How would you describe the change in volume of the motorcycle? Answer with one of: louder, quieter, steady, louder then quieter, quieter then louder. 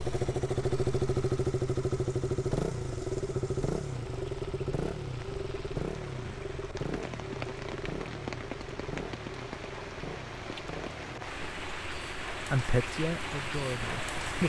quieter.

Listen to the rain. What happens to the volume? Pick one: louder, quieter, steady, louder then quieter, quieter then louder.
louder.